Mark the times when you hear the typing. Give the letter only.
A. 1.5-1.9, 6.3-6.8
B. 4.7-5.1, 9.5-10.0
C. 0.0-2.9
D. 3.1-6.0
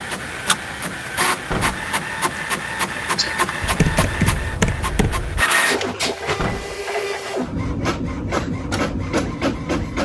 D.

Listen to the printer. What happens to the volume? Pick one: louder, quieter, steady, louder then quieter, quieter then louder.
steady.